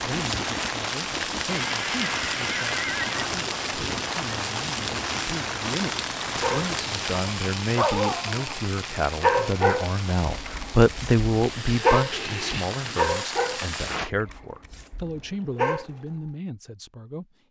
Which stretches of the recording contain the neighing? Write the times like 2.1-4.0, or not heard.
1.6-3.3, 12.1-13.1.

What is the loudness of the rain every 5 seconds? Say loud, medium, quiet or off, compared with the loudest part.
loud, loud, medium, off.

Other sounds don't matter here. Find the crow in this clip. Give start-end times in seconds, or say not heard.
not heard.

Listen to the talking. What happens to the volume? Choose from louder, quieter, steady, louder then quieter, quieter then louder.
louder then quieter.